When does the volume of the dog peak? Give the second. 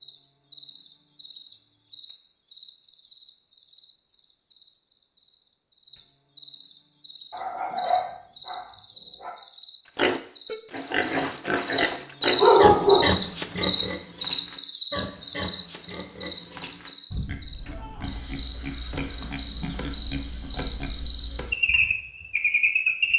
13 s.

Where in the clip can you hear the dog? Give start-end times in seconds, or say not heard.
7.3-9.3, 12.3-13.2.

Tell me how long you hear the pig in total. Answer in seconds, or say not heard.
11 s.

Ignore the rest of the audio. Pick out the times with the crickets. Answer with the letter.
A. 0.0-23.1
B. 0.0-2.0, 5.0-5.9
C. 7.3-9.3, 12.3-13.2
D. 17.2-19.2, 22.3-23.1
A.